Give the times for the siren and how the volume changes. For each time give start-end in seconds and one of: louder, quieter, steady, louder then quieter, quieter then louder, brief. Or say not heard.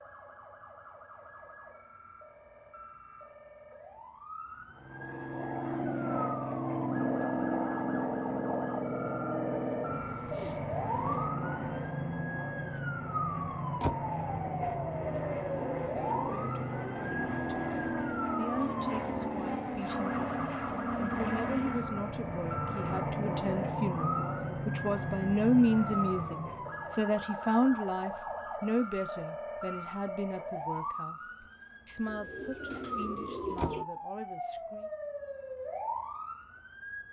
0.0-37.0 louder.